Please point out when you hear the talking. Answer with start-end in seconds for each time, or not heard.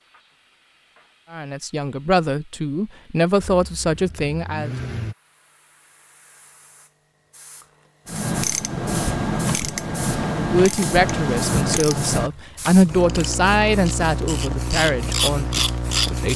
1.3-4.8, 10.3-16.3.